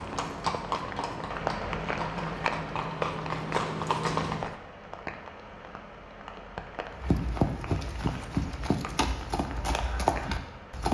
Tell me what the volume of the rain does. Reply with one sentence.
The loudness of the rain goes down.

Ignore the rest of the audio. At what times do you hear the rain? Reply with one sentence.
The rain can be heard from 0.0 to 10.8 s.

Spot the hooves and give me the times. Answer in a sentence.
The hooves can be heard from 0.0 to 4.5 s and from 7.0 to 10.8 s.